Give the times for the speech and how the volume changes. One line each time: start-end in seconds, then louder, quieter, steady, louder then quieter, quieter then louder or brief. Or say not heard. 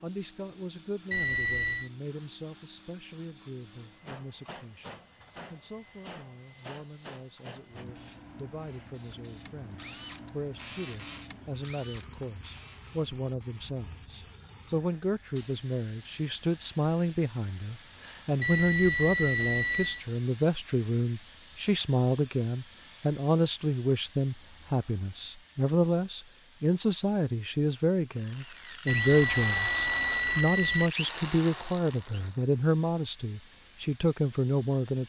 0.0-35.0 louder.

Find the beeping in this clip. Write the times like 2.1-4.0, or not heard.
1.1-1.9, 18.4-20.0, 28.9-30.9.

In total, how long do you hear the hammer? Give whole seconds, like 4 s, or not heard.
not heard.